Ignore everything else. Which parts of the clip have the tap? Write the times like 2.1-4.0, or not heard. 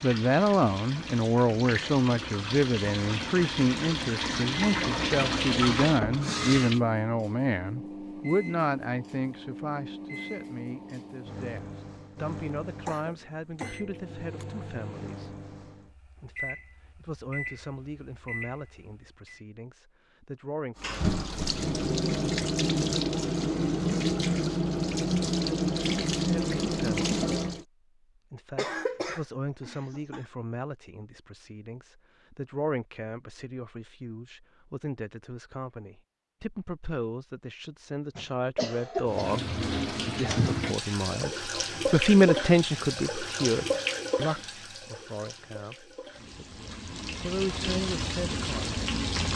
0.0-6.8, 20.8-27.6, 39.0-49.3.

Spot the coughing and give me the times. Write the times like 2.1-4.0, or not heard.
12.8-14.4, 28.6-30.2, 38.1-39.5.